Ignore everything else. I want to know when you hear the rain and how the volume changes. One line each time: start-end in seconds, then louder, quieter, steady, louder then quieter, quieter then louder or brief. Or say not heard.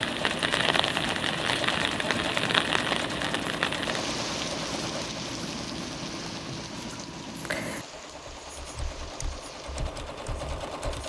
0.0-10.9 quieter.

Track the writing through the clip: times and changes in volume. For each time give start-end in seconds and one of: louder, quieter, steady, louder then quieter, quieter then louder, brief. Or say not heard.
0.0-11.0 quieter.